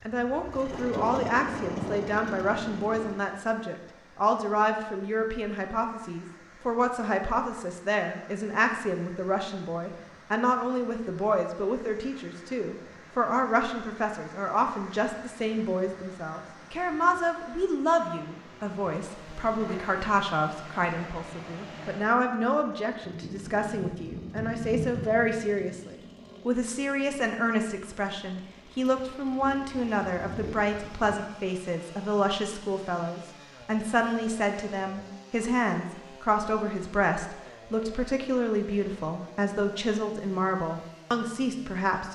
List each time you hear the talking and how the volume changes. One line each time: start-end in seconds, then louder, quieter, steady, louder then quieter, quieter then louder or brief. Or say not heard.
0.1-42.1 steady.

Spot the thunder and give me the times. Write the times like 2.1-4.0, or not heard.
0.7-3.2, 23.0-25.9, 29.1-31.1.